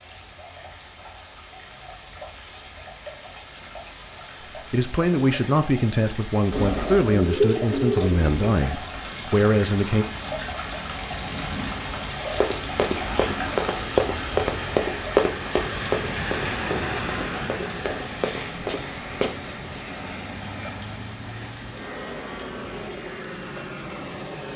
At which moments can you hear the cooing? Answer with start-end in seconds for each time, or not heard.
6.5-8.3.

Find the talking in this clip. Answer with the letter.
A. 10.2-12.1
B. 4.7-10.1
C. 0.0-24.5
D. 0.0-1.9
B.